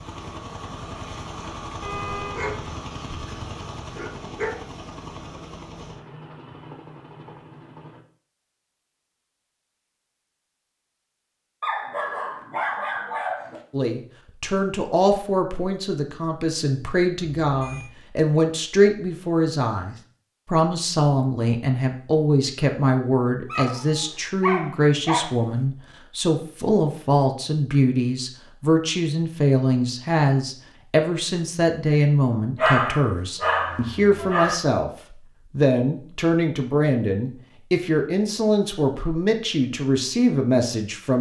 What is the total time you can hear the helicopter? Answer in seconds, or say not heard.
8 s.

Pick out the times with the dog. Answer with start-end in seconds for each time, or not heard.
2.3-4.5, 11.6-13.6, 23.4-25.4, 32.5-34.5.